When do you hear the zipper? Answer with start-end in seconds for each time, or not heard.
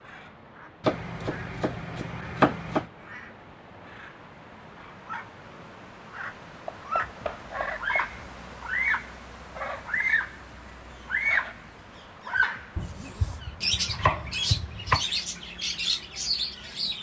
12.8-13.4.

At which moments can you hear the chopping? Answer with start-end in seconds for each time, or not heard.
0.8-2.9, 6.7-8.1, 12.8-15.1.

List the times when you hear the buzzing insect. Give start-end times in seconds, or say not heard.
not heard.